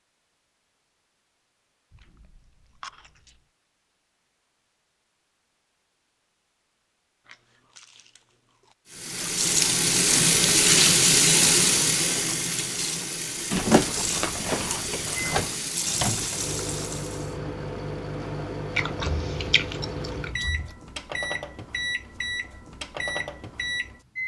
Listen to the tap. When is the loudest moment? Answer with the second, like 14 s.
11 s.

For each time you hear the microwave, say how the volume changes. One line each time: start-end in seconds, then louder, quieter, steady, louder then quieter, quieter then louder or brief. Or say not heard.
15.2-24.2 steady.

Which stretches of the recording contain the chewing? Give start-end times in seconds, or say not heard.
1.9-3.4, 7.2-8.8, 13.5-15.6, 18.8-20.7.